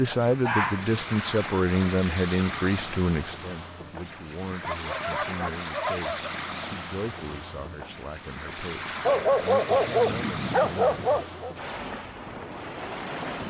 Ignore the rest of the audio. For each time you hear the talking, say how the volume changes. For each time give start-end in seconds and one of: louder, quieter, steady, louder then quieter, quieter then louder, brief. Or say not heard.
0.0-11.0 quieter.